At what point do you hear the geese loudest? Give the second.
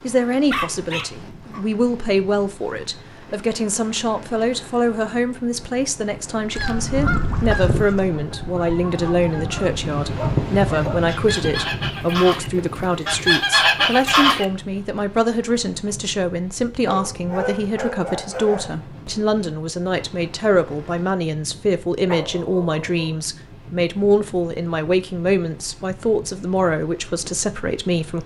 14 s.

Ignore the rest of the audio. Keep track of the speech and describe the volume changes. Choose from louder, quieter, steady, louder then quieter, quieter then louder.
steady.